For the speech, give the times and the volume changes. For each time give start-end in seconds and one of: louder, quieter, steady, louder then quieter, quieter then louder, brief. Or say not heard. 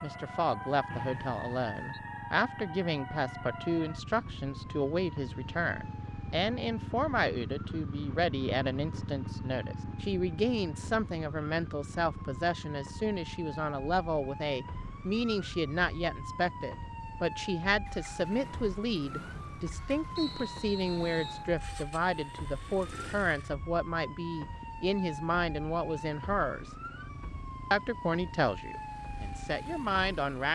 0.0-26.7 steady
27.7-30.5 brief.